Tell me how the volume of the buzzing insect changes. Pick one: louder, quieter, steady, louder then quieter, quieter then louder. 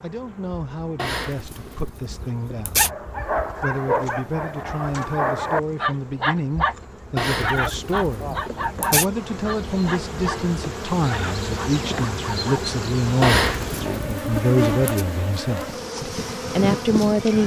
louder.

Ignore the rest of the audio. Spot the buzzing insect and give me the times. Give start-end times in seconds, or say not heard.
0.0-17.4.